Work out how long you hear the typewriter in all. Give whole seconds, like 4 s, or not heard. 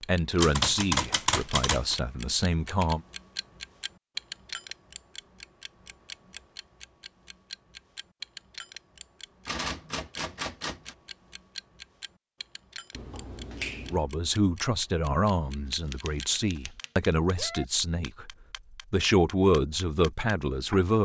5 s.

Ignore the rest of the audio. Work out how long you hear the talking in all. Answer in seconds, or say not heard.
10 s.